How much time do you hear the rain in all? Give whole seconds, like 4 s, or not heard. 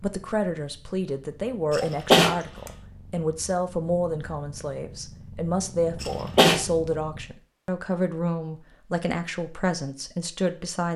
not heard.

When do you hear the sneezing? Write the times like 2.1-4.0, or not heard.
1.7-2.4, 6.0-6.6.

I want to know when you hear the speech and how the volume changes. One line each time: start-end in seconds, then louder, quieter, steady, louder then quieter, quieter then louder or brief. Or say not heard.
0.0-10.9 steady.